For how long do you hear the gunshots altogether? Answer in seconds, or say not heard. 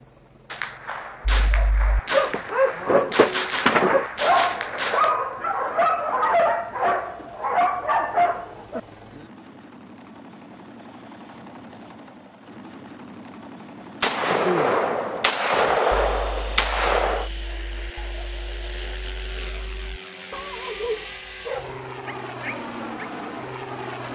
8 s.